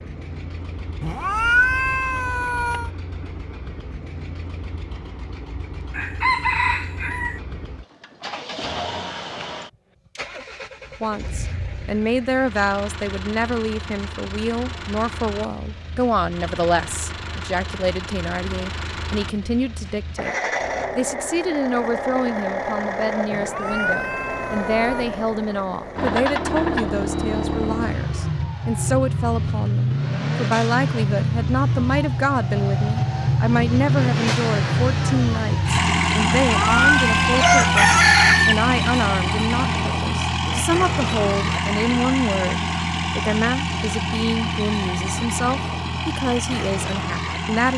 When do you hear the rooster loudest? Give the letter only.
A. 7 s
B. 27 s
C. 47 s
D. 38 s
D.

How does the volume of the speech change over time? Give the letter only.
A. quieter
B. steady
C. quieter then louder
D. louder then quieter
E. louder
B.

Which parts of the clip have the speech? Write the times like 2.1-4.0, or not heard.
11.0-20.4, 20.9-47.7.